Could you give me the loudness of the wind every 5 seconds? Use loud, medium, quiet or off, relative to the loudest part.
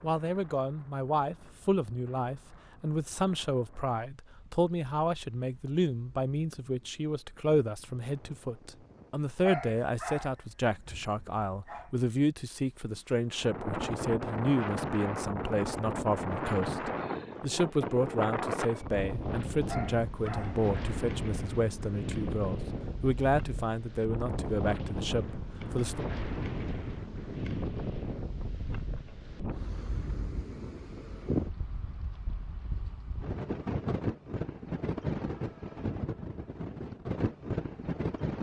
quiet, quiet, loud, loud, loud, loud, loud, loud.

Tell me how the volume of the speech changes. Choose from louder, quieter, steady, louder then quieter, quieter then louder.
steady.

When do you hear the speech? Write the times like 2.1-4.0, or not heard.
0.0-26.1.